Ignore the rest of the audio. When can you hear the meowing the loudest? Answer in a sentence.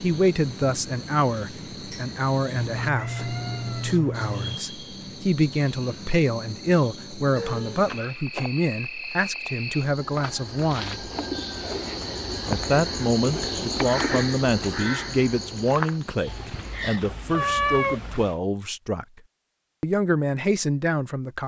The volume of the meowing peaks at 18 seconds.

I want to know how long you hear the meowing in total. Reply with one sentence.
You can hear the meowing for 5 seconds altogether.